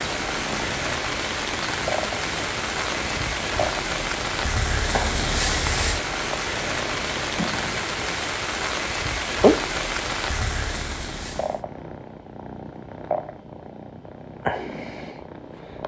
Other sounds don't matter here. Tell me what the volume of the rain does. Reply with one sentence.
The loudness of the rain stays about the same.